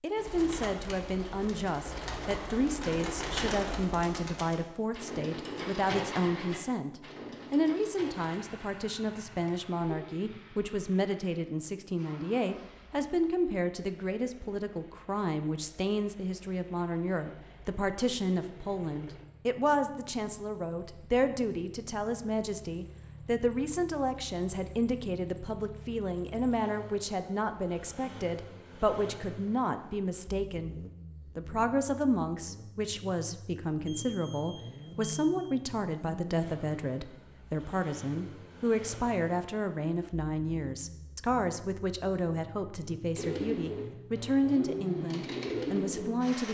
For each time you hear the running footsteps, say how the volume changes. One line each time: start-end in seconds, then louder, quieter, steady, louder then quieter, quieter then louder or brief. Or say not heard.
not heard.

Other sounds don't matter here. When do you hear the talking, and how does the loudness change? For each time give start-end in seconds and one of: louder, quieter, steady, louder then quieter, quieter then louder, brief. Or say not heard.
0.0-46.5 steady.